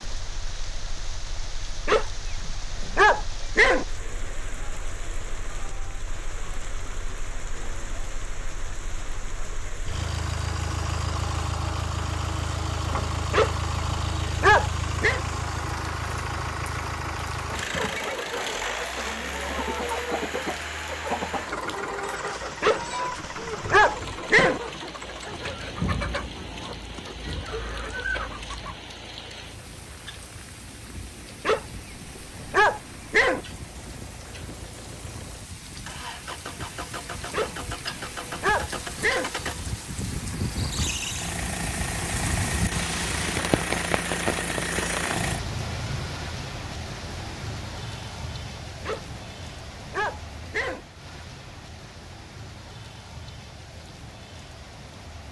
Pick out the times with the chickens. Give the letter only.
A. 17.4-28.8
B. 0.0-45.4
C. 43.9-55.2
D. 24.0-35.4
A.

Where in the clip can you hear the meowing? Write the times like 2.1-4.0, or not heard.
not heard.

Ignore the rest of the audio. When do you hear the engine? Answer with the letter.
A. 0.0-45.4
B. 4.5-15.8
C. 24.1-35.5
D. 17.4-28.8
A.